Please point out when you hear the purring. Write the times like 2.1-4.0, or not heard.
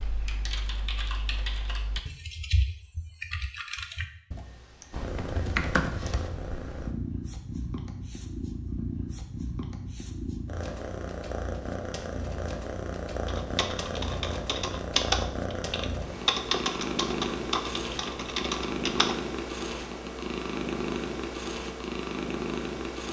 4.9-23.0.